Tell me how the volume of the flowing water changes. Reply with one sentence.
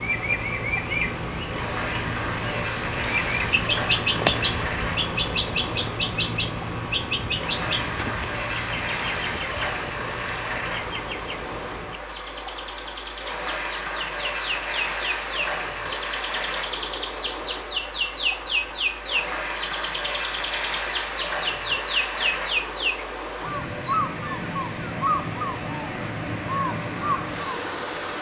The volume of the flowing water stays about the same.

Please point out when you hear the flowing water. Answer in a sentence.
You can hear the flowing water from 0.0 to 28.1 s.